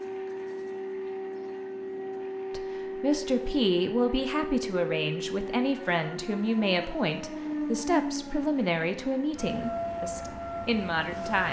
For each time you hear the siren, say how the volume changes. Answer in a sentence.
You can hear the siren from 0.0 to 11.4 s, at a steady volume.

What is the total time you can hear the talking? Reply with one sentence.
You can hear the talking for 9 seconds altogether.